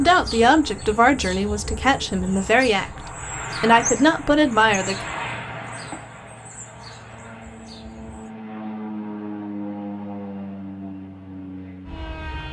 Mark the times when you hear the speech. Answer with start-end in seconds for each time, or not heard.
0.0-5.0.